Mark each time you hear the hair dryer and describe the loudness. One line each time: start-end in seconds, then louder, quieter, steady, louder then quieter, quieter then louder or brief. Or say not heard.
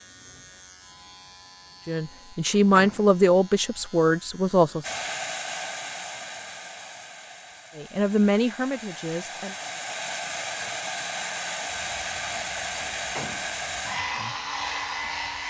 4.8-15.4 quieter then louder.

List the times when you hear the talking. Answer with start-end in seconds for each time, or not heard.
1.9-4.8, 7.8-9.6.